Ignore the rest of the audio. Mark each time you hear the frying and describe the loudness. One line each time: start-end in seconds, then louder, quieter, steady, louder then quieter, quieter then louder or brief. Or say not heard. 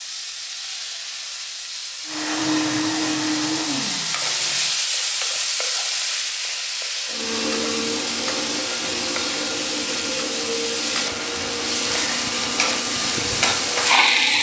0.0-14.3 louder.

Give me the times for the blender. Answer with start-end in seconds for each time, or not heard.
2.0-4.8, 7.0-14.3.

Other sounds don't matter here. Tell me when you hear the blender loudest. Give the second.
3 s.